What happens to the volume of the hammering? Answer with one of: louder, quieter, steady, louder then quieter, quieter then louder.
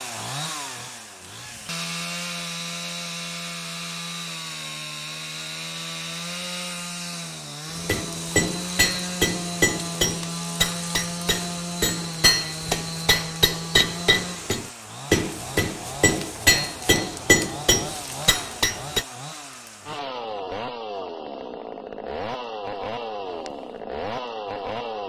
steady.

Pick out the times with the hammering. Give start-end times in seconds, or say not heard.
7.8-19.1.